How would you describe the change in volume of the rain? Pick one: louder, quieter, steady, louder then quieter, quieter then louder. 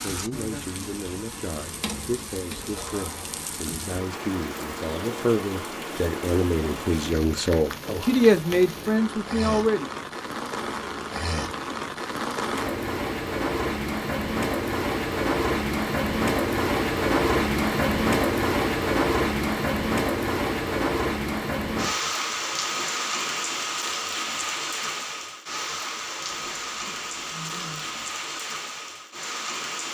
louder then quieter.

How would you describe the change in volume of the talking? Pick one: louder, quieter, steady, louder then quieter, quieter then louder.
louder.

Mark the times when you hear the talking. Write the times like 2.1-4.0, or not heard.
0.0-9.9.